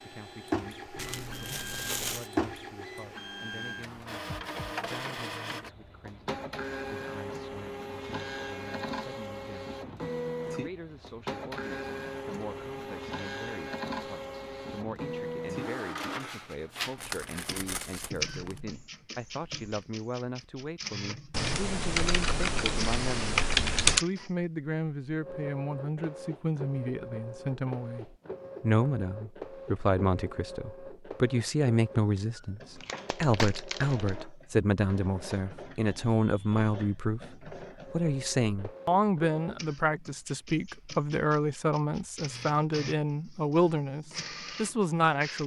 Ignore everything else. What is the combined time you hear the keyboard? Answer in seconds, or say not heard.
3 s.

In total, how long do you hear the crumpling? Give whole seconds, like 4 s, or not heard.
4 s.